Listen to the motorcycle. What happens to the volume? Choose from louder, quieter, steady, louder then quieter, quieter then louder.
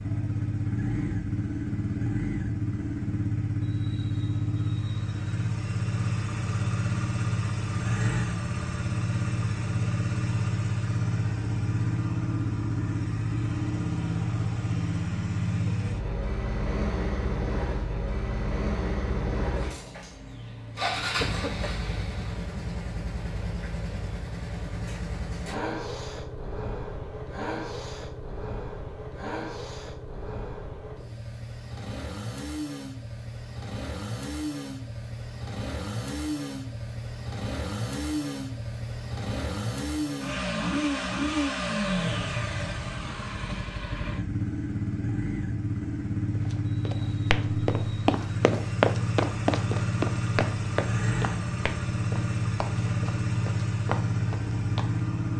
quieter then louder.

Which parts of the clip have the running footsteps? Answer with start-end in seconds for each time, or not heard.
46.4-55.0.